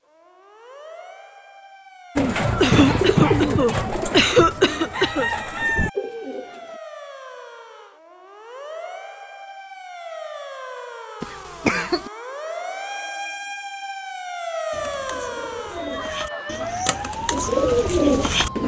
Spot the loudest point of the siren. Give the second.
15 s.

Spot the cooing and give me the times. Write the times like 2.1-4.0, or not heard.
2.1-6.7, 14.7-18.6.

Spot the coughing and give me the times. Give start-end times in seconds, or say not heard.
2.6-5.3, 11.2-12.1.